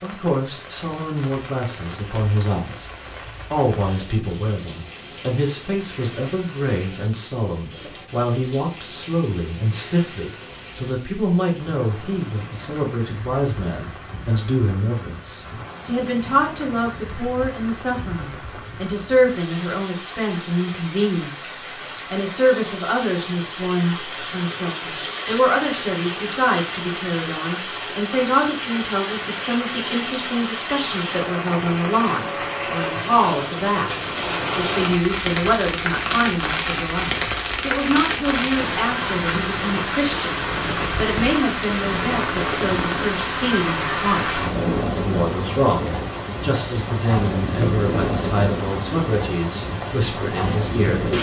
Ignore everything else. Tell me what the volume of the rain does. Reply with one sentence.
The volume of the rain goes up.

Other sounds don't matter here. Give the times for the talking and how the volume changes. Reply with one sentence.
You can hear the talking briefly from 0.0 to 2.9 s; and from 3.5 to 51.1 s, at a steady volume.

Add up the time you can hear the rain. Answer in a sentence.
You can hear the rain for 51 seconds altogether.